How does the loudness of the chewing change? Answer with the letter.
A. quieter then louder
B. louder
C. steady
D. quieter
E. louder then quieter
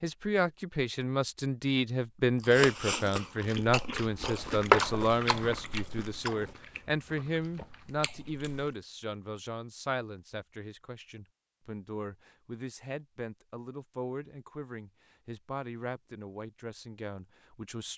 E.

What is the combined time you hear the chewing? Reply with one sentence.
The chewing can be heard for 6 seconds in total.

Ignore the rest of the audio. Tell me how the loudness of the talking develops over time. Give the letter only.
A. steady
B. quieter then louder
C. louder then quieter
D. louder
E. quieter
E.